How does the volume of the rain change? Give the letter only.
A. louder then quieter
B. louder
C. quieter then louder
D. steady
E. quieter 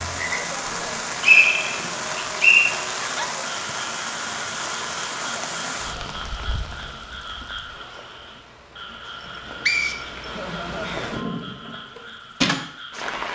C.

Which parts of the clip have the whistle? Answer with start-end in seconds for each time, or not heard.
0.8-2.7, 9.2-10.2.